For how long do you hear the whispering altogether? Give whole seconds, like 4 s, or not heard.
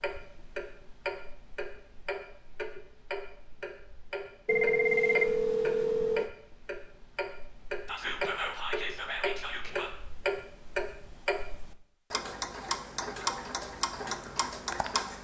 2 s.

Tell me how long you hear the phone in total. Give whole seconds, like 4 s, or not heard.
2 s.